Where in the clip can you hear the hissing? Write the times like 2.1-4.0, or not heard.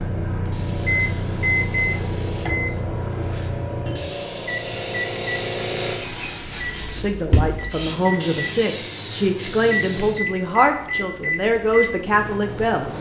0.0-10.2.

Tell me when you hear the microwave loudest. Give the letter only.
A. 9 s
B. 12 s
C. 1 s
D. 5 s
C.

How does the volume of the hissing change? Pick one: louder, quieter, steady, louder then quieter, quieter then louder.
louder.